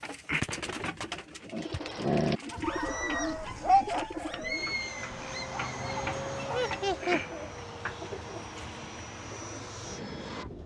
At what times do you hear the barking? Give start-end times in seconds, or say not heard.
1.5-6.8.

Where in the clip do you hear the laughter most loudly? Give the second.
7 s.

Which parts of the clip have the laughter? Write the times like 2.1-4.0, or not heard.
2.5-3.8, 6.5-7.2.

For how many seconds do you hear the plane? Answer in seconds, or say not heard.
6 s.